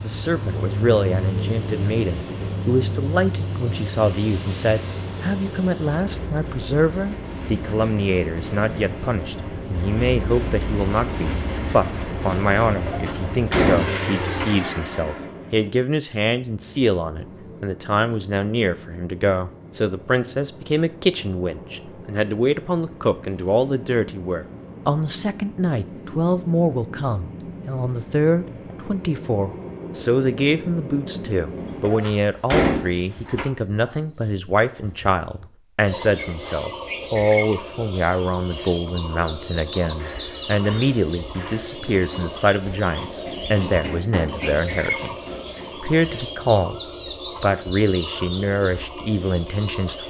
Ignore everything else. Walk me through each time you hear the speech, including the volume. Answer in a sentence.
The speech can be heard from 0.0 to 46.8 s, at a steady volume; and briefly from 47.4 to 50.0 s.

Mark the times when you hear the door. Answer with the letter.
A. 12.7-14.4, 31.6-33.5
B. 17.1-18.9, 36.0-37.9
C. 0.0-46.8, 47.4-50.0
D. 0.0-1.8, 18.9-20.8
A.